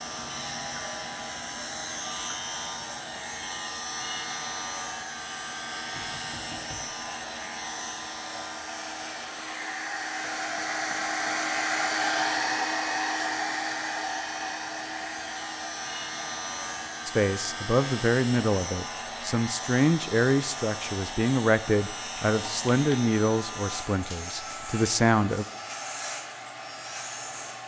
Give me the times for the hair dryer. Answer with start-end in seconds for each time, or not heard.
0.0-27.6.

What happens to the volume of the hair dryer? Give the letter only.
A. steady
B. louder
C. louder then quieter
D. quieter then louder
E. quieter
C.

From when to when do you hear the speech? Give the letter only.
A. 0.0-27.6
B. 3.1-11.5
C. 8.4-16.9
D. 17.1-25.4
D.